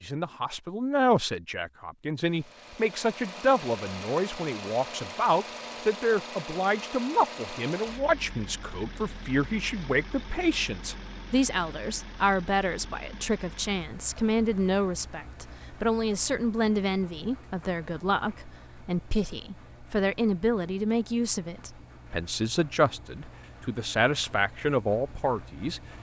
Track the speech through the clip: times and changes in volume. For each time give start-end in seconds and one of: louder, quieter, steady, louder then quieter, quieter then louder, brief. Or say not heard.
0.0-25.8 steady.